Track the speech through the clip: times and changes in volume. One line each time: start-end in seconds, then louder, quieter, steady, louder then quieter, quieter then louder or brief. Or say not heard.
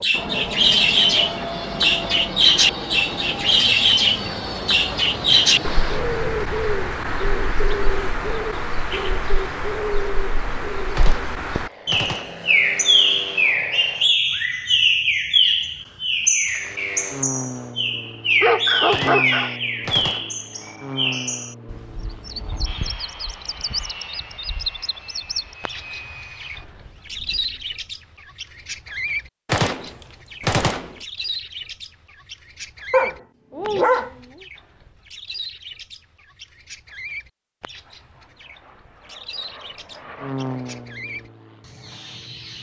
not heard.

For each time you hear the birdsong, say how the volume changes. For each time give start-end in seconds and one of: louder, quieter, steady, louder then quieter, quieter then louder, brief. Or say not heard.
0.0-42.5 quieter.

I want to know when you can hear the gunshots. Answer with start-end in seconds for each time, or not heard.
10.9-12.4, 18.9-20.4, 29.4-30.9.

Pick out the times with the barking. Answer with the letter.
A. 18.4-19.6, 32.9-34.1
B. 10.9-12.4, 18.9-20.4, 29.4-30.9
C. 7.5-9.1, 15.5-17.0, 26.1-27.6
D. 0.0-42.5
A.